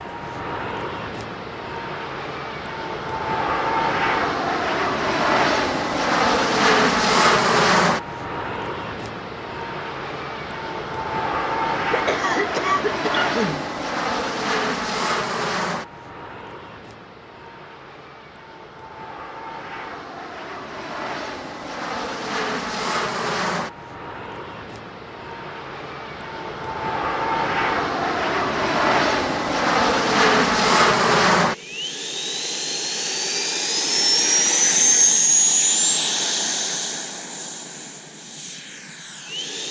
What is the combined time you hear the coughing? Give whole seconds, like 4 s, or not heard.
2 s.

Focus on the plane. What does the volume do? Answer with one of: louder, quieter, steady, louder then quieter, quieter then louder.
quieter then louder.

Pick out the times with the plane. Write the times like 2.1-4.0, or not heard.
0.0-39.6.